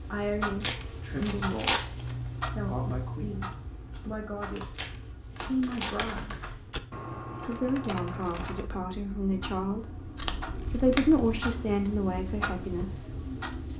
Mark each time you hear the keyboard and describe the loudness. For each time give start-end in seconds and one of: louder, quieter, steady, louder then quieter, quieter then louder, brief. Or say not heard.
3.9-8.7 louder.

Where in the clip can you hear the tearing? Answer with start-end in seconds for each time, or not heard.
0.6-2.1, 4.8-6.2, 10.2-11.3.